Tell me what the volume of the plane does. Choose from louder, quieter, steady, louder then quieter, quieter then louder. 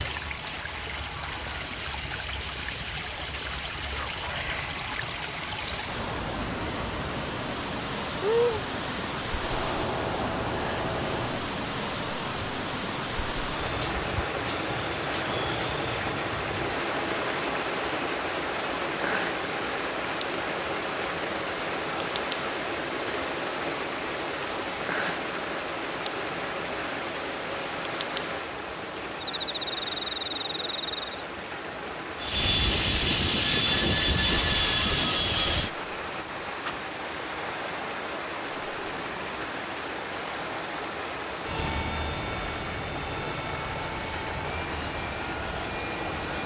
quieter.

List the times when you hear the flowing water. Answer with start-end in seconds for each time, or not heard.
0.0-46.4.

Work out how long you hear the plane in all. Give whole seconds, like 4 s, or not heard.
14 s.